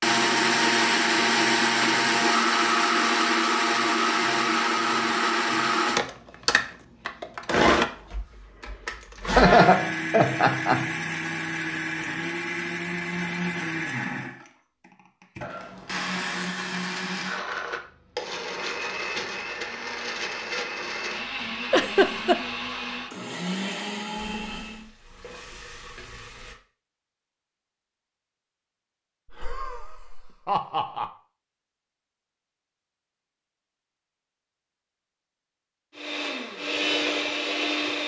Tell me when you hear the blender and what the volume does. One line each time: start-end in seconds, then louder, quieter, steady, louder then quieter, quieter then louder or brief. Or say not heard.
0.0-24.9 quieter
36.0-38.0 brief.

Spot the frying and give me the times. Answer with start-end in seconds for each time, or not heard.
24.1-26.6.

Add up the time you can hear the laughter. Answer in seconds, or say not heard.
4 s.